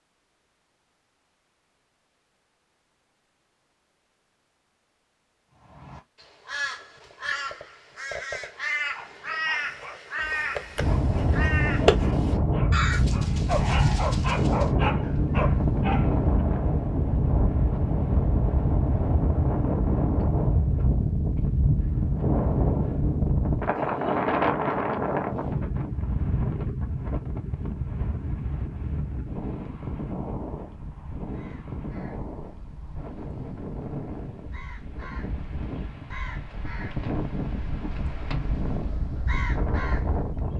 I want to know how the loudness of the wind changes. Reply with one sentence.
The loudness of the wind goes down.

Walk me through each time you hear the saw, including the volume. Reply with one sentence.
The saw can't be heard in this clip.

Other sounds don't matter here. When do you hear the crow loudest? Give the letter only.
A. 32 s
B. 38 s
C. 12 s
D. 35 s
C.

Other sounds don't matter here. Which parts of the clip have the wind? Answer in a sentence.
You can hear the wind from 10.8 to 40.5 s.